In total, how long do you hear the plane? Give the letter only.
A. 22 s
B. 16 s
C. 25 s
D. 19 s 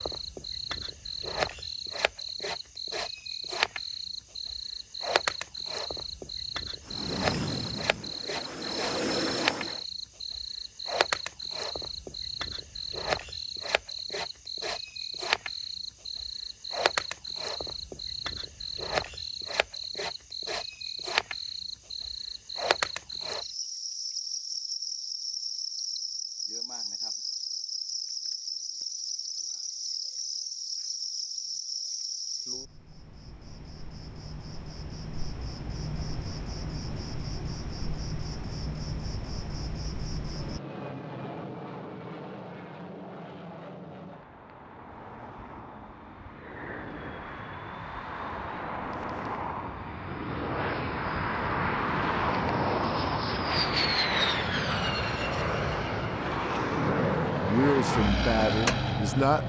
A.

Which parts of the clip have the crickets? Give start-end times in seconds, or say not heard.
0.0-40.6.